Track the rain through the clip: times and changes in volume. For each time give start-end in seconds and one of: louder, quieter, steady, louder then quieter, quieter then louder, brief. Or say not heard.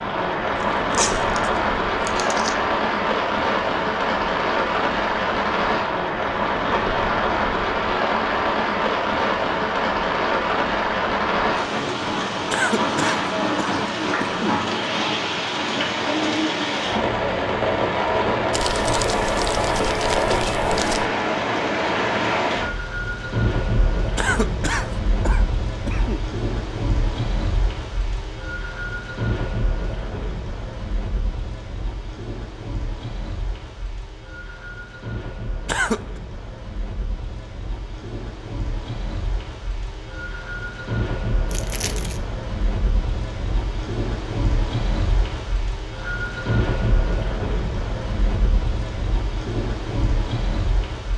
0.0-51.1 quieter then louder.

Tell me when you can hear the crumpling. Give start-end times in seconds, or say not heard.
0.6-2.5, 18.5-21.1, 41.5-42.2.